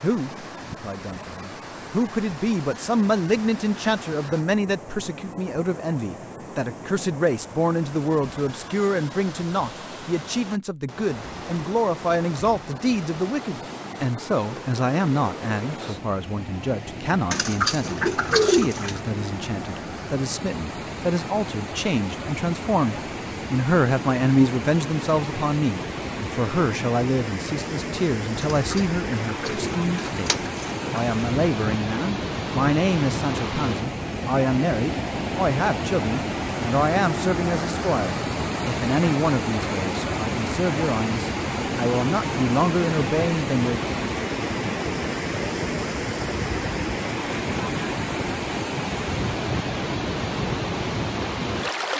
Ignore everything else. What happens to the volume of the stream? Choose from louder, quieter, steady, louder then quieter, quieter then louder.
louder.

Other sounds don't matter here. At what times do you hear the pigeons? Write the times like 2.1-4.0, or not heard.
17.3-19.0, 28.5-31.0.